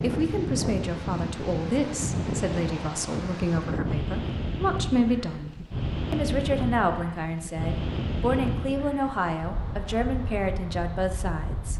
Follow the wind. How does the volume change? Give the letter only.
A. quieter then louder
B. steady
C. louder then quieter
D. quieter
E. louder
D.